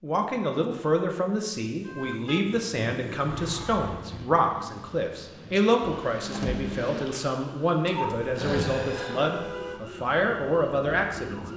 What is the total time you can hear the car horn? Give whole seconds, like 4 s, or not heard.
4 s.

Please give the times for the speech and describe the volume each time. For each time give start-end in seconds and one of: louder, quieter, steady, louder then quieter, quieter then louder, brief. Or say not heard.
0.0-11.4 steady.